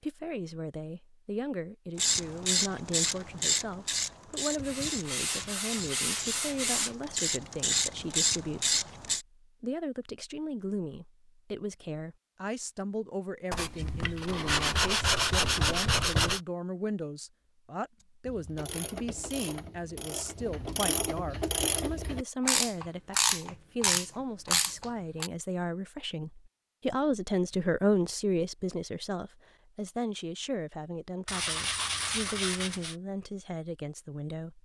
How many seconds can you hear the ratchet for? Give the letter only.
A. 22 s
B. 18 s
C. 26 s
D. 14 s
D.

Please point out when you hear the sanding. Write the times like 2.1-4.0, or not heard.
4.5-7.0, 13.5-16.4, 31.2-33.0.